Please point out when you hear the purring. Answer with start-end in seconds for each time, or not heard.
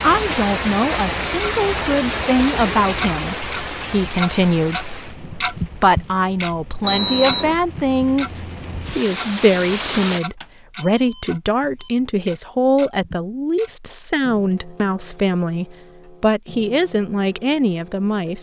not heard.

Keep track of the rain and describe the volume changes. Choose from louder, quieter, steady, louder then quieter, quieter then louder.
quieter then louder.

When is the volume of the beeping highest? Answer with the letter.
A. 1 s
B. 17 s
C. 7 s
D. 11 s
C.